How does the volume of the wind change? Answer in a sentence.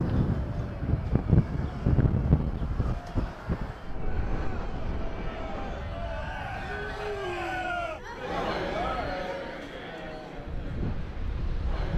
The loudness of the wind goes down, then up.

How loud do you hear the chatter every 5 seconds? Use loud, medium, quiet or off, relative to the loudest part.
quiet, loud, medium.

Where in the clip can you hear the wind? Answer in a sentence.
The wind can be heard from 0.0 to 11.9 s.